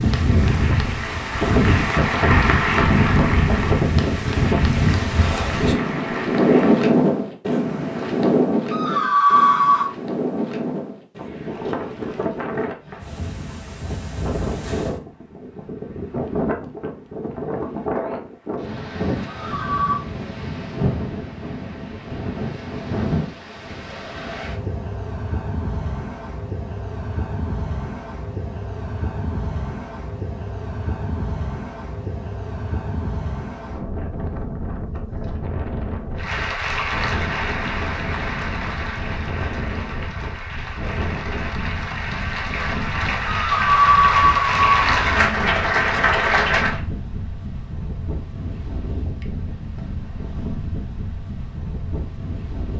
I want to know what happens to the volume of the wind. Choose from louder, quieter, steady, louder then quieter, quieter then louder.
quieter.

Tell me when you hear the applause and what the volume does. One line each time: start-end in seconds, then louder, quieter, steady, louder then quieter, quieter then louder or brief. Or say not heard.
0.0-6.9 louder then quieter
36.1-46.8 quieter then louder.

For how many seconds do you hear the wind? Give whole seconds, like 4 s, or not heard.
53 s.